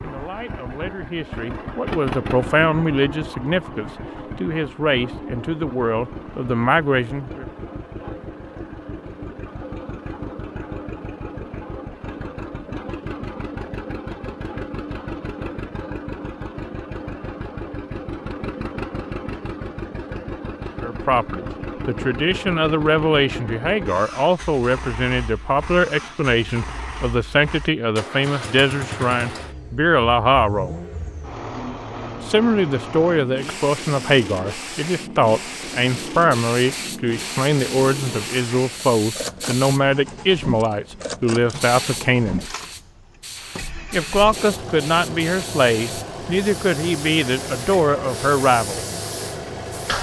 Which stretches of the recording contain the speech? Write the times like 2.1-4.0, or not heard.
0.0-7.5, 20.8-30.8, 32.2-42.5, 43.9-48.8.